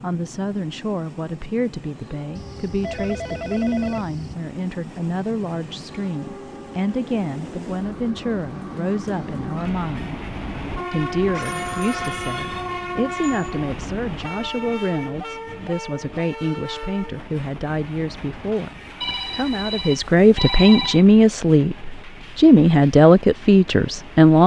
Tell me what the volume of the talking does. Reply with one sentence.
The loudness of the talking goes up.